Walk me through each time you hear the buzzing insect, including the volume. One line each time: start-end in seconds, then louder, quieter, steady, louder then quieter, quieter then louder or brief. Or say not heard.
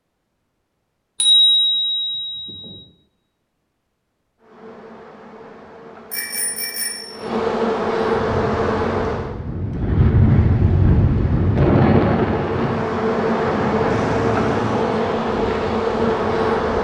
4.4-9.3 louder
11.2-16.7 louder.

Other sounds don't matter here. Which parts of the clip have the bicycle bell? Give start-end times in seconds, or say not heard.
1.2-2.7, 6.1-7.1, 13.9-14.8.